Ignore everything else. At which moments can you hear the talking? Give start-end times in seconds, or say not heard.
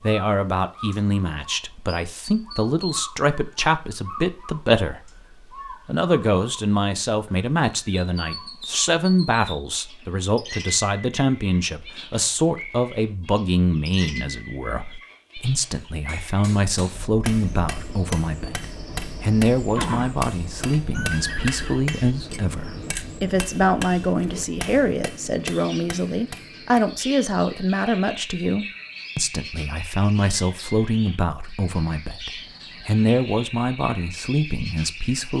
0.0-5.1, 5.8-35.3.